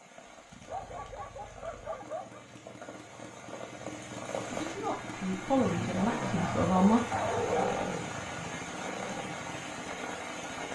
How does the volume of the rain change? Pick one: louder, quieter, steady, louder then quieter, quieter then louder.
louder.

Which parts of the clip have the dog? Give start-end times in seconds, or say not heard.
0.7-2.4, 6.0-7.8.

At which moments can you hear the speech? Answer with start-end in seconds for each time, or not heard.
4.5-7.0.